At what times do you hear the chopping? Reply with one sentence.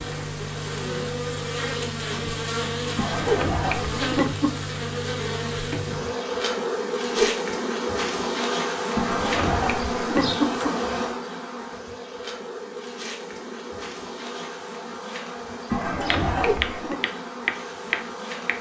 You can hear the chopping from 16.1 to 18.5 s.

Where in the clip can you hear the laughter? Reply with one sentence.
The laughter can be heard from 3.0 to 4.7 s, from 8.9 to 10.7 s and from 15.7 to 17.0 s.